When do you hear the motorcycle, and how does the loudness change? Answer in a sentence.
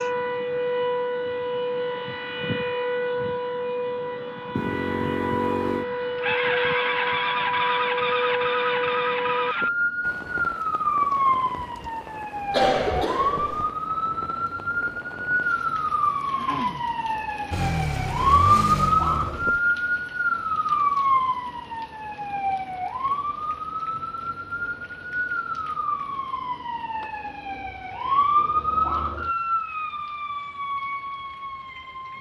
You can hear the motorcycle from 4.5 to 9.7 s, at a steady volume; and briefly from 17.5 to 19.6 s.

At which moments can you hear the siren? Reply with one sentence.
You can hear the siren from 0.0 to 32.1 s.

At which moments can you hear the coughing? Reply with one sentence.
You can hear the coughing from 12.5 to 13.7 s.